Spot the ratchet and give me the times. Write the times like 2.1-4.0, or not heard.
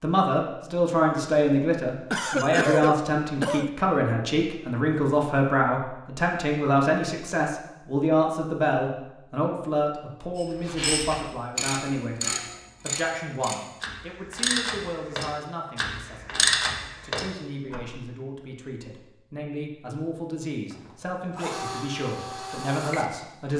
10.3-17.9.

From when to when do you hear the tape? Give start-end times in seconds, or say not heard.
not heard.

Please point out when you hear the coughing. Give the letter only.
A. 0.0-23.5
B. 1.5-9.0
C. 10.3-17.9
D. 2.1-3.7
D.